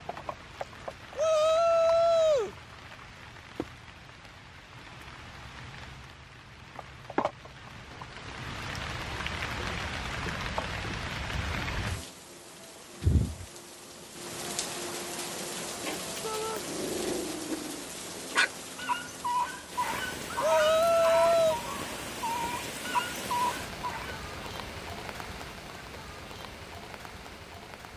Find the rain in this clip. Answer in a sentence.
You can hear the rain from 0.0 to 27.9 s.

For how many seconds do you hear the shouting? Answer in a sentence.
You can hear the shouting for 3 seconds altogether.